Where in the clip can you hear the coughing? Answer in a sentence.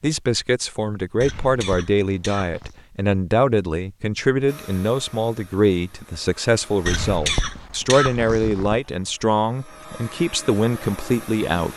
You can hear the coughing from 1.2 to 2.8 s and from 6.8 to 8.8 s.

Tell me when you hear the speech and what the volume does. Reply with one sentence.
You can hear the speech from 0.0 to 11.7 s, at a steady volume.